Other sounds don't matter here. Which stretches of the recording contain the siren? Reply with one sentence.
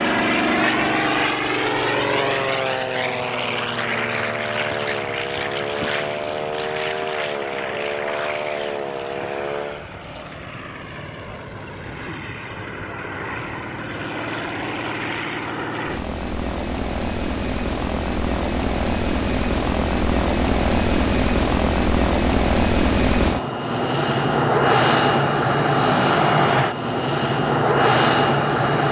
You can hear the siren from 0.0 to 9.9 s.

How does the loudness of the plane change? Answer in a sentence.
The volume of the plane goes down, then up.